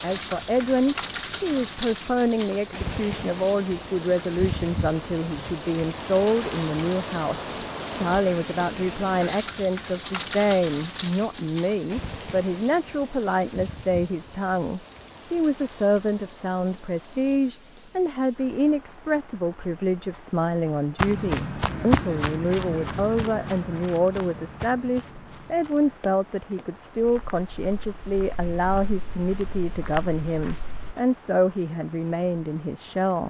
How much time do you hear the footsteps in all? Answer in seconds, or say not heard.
10 s.